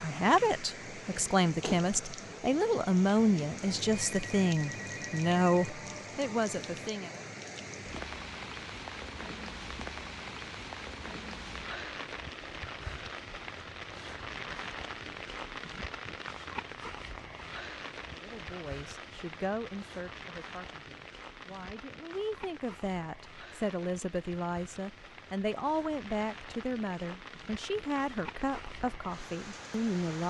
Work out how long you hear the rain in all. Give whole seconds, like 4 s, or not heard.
30 s.